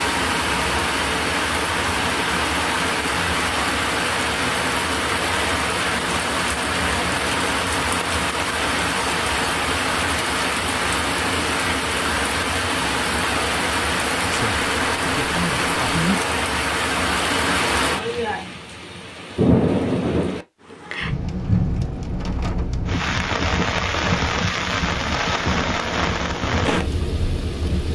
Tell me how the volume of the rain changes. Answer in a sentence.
The volume of the rain stays about the same.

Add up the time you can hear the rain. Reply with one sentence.
You can hear the rain for 28 seconds altogether.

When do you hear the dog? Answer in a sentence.
You can't hear the dog here.